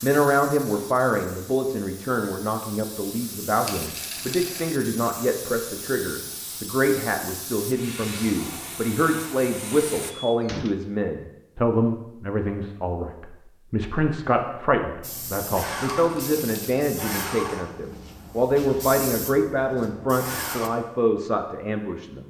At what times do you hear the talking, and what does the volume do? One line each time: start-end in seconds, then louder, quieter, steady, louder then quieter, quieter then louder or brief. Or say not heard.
0.0-22.2 steady.